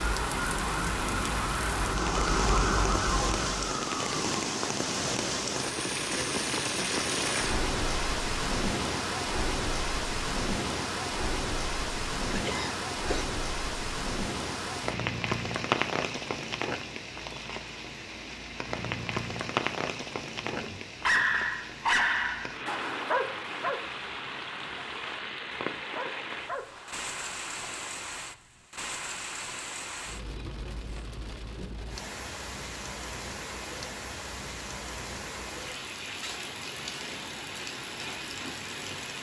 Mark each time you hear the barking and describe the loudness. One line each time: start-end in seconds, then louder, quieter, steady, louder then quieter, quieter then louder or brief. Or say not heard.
20.4-27.9 quieter.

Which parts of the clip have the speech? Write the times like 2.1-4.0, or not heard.
not heard.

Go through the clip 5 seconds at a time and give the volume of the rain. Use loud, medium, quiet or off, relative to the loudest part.
loud, loud, loud, loud, medium, medium, medium, medium.